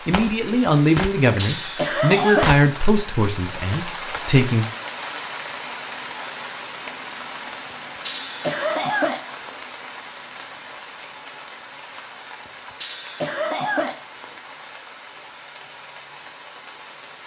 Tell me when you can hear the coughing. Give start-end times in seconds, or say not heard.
1.4-2.6, 8.1-9.7, 12.8-14.4.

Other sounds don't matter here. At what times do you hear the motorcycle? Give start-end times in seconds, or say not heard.
not heard.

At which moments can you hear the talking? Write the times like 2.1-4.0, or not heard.
0.1-4.7.